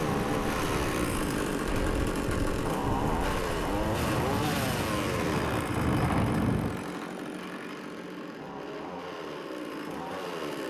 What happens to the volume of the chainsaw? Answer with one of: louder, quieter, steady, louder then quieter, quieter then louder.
quieter.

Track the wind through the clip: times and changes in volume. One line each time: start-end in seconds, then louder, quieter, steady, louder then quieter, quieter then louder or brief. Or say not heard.
0.0-6.8 louder.